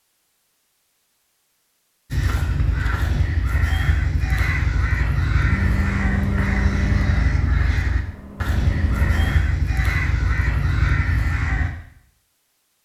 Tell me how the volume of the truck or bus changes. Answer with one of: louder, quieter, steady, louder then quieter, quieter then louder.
quieter then louder.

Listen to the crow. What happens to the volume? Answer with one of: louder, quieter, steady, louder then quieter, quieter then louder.
steady.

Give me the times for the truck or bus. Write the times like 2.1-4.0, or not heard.
5.4-9.4.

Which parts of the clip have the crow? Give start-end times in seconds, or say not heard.
2.1-11.7.